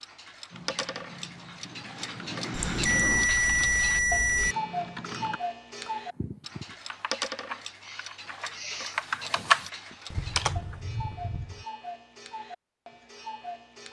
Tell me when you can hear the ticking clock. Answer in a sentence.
You can hear the ticking clock from 0.0 to 13.8 s.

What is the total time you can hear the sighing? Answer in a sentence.
The sighing can be heard for 3 seconds in total.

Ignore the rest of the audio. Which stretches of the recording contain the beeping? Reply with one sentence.
The beeping can be heard from 2.5 to 4.5 s.